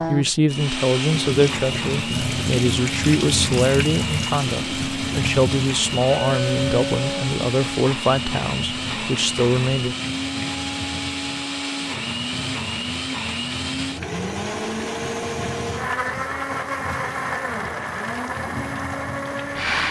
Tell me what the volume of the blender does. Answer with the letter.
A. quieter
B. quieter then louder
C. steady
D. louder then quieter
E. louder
C.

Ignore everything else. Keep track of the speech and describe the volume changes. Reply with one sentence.
The volume of the speech stays about the same.